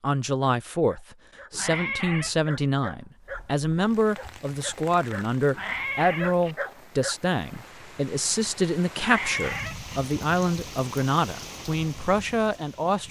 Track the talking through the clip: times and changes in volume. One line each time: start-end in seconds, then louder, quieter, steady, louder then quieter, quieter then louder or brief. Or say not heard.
0.0-13.0 steady.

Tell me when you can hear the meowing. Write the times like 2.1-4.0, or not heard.
1.5-2.4, 5.5-6.5, 8.9-9.9.